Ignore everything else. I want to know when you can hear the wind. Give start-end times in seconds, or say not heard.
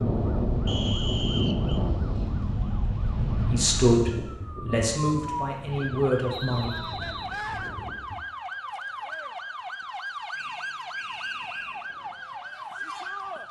0.0-8.2.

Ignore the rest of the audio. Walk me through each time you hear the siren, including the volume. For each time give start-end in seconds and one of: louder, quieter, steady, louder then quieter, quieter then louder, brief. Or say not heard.
0.0-13.4 louder.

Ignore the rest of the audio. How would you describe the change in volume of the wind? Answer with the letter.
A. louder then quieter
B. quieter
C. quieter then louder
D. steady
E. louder
B.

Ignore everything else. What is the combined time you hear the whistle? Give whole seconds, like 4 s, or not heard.
4 s.